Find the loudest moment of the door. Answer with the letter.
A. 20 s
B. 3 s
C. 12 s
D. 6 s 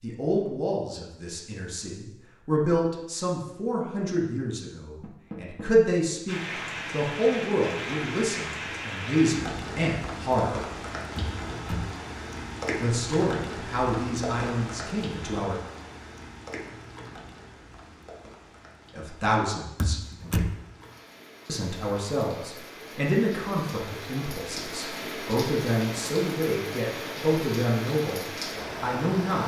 A.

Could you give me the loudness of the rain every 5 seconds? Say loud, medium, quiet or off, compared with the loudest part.
off, loud, loud, medium, medium, loud.